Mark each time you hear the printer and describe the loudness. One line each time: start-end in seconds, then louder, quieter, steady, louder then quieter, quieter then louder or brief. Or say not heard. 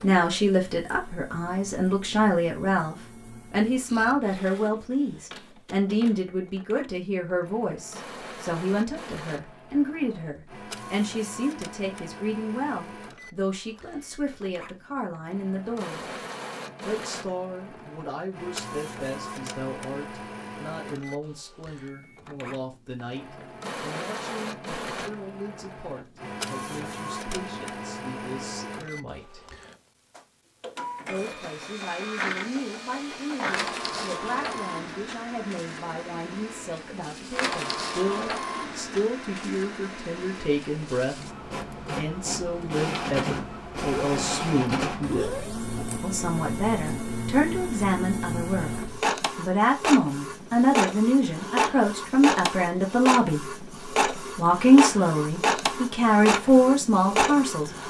0.0-57.8 louder.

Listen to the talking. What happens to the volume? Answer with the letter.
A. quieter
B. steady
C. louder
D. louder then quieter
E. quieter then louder
E.